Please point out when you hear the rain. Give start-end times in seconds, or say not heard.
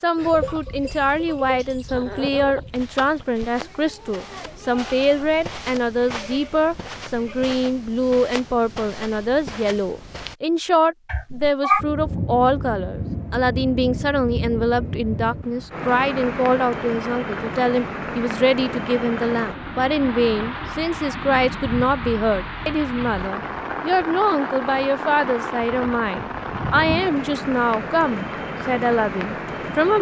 11.8-29.9.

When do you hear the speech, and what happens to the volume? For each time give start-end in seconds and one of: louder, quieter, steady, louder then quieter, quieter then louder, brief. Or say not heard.
0.0-29.9 steady.